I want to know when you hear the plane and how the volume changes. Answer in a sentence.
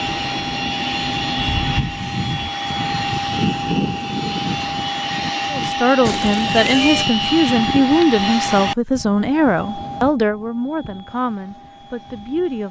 You can hear the plane from 0.0 to 12.6 s, getting quieter.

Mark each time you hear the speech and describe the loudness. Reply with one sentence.
You can hear the speech from 5.5 to 12.6 s, getting quieter.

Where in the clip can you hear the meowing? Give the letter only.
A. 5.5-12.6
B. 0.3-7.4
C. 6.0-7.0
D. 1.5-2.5
C.